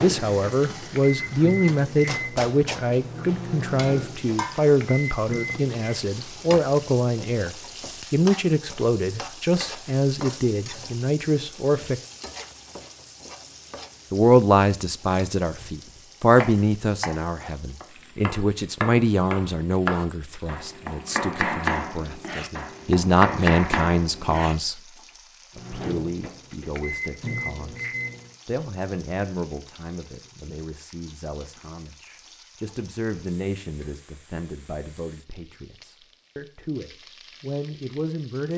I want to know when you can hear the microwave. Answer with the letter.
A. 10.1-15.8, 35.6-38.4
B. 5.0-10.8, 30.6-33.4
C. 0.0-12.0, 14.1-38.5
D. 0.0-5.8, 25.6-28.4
D.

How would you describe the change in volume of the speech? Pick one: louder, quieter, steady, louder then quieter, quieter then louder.
quieter.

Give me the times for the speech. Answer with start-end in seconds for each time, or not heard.
0.0-12.0, 14.1-38.5.